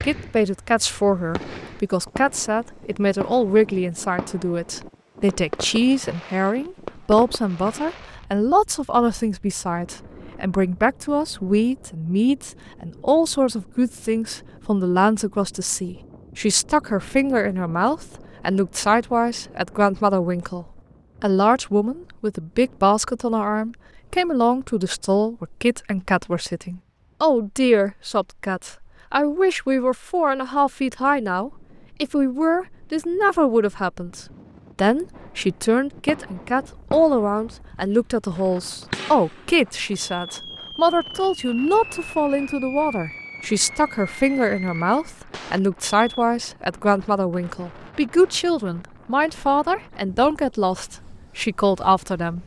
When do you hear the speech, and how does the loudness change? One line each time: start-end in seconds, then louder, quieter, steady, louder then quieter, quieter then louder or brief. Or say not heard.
0.0-52.4 steady.